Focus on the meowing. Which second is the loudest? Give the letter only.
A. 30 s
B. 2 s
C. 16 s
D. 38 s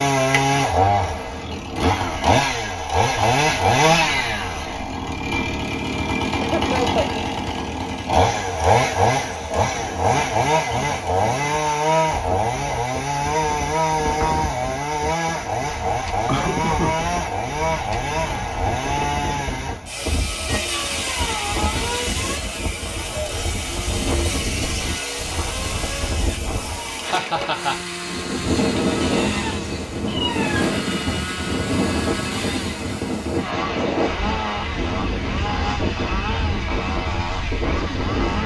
A.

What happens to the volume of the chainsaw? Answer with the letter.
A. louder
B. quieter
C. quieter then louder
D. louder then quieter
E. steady
B.